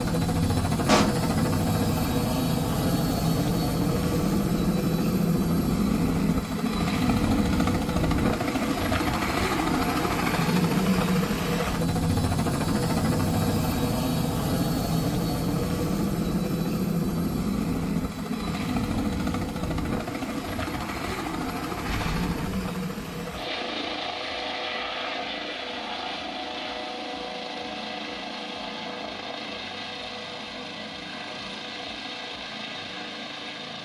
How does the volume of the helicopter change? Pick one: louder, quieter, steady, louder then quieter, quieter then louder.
quieter.